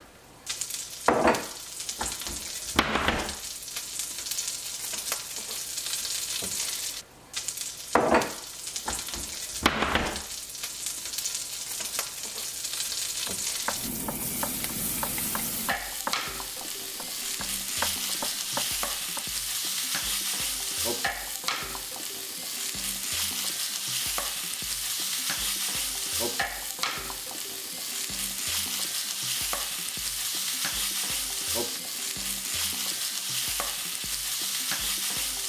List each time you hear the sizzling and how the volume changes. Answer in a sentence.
The sizzling can be heard from 0.0 to 35.4 s, at a steady volume.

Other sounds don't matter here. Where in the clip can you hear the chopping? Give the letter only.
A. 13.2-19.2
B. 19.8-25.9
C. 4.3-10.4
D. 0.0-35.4
A.